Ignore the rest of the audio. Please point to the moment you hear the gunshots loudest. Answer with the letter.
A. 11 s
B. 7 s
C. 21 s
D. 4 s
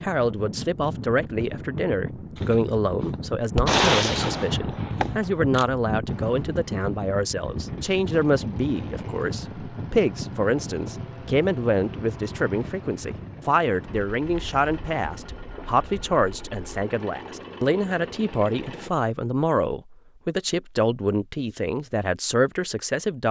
D.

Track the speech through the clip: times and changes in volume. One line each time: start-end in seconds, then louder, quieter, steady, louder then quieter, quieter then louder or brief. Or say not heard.
0.0-23.2 steady.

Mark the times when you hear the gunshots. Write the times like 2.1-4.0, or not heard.
2.4-5.7.